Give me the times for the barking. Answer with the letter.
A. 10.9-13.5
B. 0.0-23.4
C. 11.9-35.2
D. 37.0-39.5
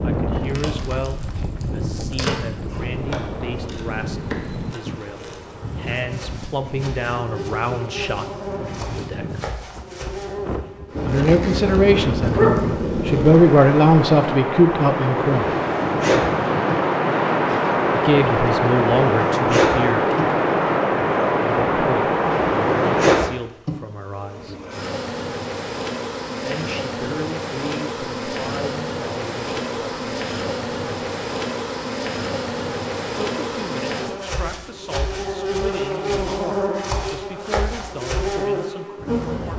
A.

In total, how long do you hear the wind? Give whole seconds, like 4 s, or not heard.
23 s.